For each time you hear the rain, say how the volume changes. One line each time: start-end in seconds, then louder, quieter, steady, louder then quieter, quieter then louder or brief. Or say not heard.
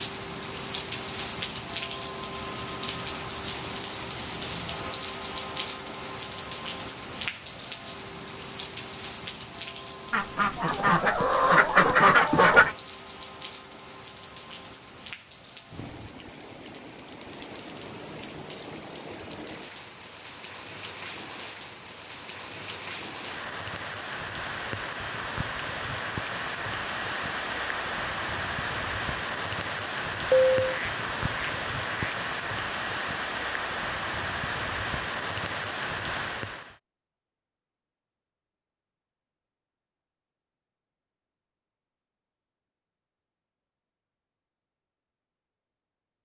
0.0-36.8 quieter then louder.